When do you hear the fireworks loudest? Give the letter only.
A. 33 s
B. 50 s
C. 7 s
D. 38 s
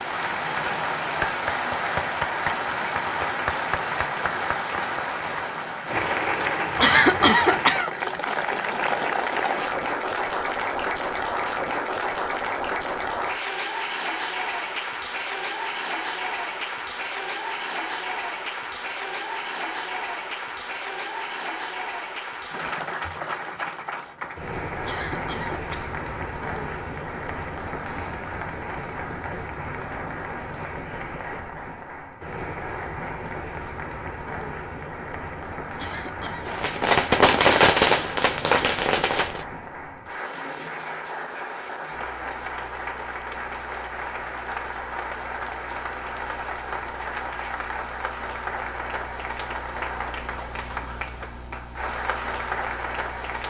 D.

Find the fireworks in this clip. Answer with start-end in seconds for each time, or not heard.
36.5-39.5.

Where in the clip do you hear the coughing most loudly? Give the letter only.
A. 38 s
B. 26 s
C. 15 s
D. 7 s
D.